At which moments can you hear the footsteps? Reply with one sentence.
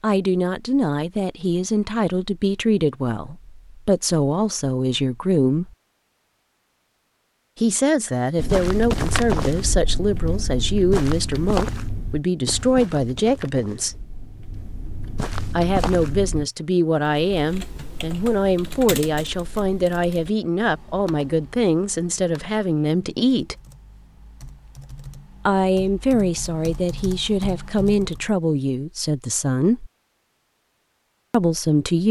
You can hear the footsteps from 8.3 to 16.4 s.